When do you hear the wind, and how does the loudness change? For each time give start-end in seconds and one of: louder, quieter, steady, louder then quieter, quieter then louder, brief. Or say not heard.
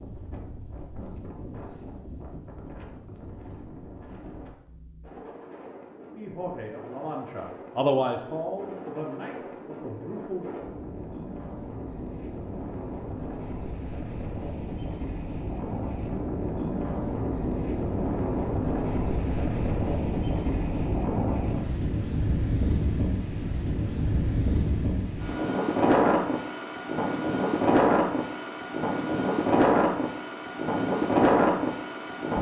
0.0-32.3 louder.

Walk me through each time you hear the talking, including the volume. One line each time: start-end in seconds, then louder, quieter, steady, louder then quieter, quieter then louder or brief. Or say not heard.
6.2-10.6 louder then quieter.